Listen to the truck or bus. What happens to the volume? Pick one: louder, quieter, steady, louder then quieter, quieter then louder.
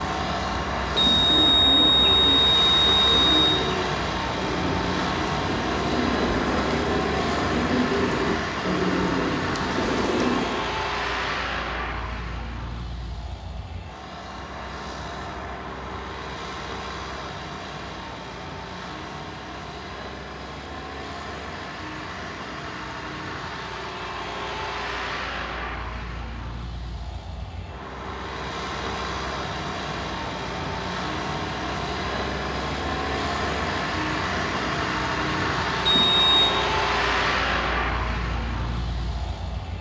quieter then louder.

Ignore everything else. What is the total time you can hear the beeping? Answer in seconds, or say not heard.
3 s.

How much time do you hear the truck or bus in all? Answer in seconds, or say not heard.
40 s.